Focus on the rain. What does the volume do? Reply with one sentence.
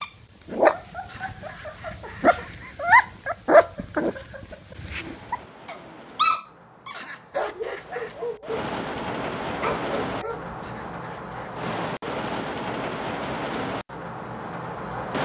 The volume of the rain goes up.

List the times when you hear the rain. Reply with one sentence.
You can hear the rain from 5.0 to 15.1 s.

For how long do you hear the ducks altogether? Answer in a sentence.
You can't hear the ducks here.